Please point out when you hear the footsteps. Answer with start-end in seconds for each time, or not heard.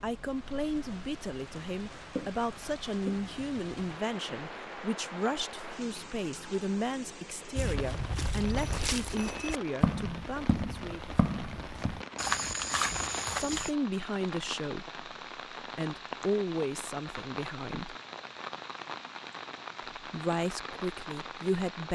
7.5-13.7.